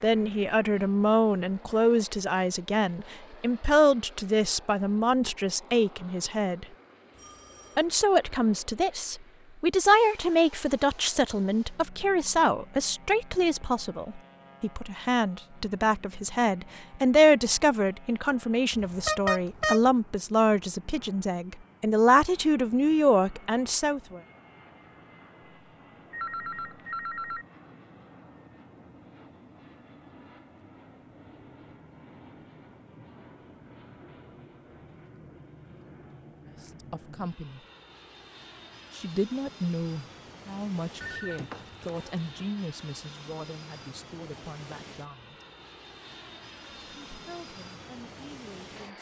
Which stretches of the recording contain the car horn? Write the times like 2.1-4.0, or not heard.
18.7-19.9.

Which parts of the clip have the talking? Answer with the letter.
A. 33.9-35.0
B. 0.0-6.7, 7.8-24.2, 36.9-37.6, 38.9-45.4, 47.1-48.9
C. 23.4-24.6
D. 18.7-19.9
B.